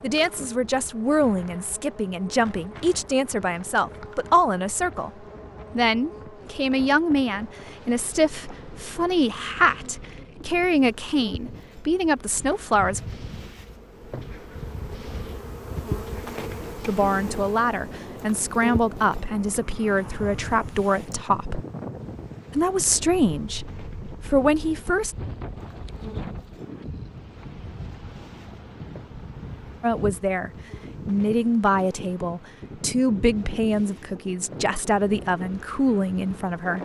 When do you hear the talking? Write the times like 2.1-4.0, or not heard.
0.0-5.1, 5.8-13.0, 16.9-21.6, 22.5-25.1, 29.8-36.8.